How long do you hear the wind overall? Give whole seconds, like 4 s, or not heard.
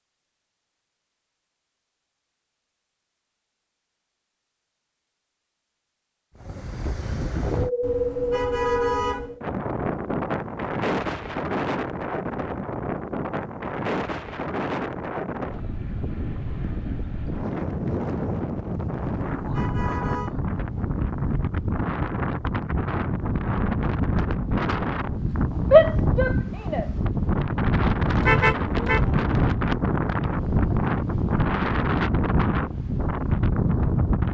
28 s.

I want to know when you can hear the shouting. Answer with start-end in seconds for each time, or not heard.
25.7-26.9.